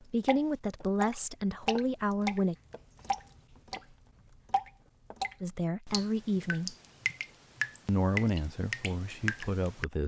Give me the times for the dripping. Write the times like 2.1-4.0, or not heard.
0.2-9.8.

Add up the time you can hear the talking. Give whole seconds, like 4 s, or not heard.
6 s.